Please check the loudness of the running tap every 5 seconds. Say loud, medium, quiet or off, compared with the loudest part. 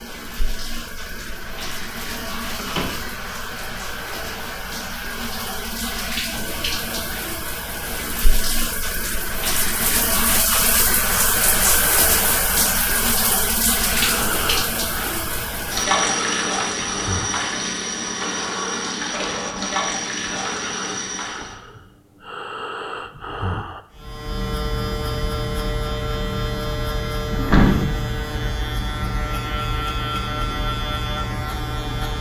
medium, medium, loud, loud, medium, off, off.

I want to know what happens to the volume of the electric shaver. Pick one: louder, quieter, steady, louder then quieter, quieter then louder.
steady.